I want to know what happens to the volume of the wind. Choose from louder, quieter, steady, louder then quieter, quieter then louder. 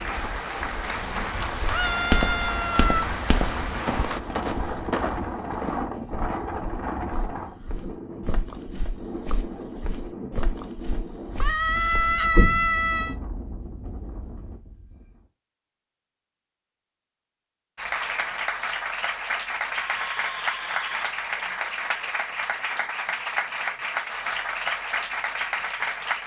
louder then quieter.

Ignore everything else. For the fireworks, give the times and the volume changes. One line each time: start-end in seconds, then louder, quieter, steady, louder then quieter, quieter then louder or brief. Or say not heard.
not heard.